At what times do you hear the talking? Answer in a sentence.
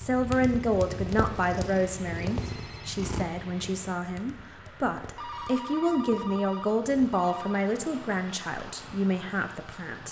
You can hear the talking from 0.0 to 10.0 s.